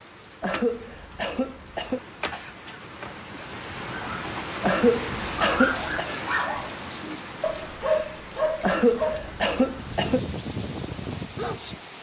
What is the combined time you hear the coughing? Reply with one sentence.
You can hear the coughing for 5 seconds altogether.